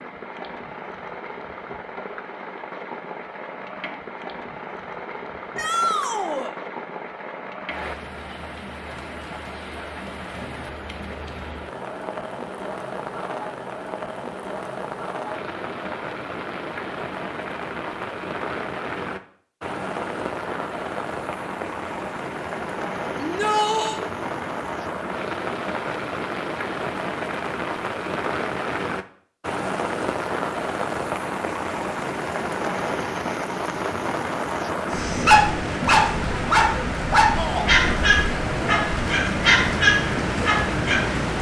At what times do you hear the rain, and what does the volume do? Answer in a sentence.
The rain can be heard from 0.0 to 41.3 s, getting louder.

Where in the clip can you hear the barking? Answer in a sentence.
The barking can be heard from 35.0 to 41.0 s.